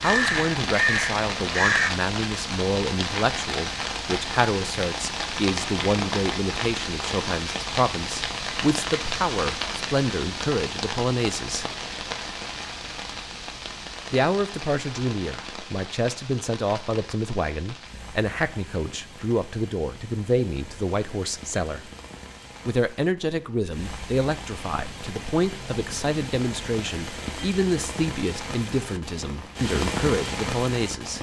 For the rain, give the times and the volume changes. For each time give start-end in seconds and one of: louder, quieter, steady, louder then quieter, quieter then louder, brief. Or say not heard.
0.0-31.1 quieter then louder.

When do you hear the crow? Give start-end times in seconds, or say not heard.
0.0-1.9.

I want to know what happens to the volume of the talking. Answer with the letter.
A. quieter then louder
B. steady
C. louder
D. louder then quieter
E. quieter
B.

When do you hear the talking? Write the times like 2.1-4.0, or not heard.
0.0-11.7, 14.1-21.9, 22.6-31.1.